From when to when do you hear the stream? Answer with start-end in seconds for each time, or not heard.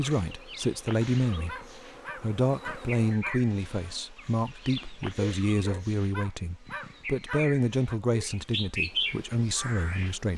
not heard.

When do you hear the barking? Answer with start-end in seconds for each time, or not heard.
1.0-3.4, 5.7-8.0.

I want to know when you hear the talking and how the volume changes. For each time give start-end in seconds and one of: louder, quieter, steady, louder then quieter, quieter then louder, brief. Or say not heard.
0.0-10.3 steady.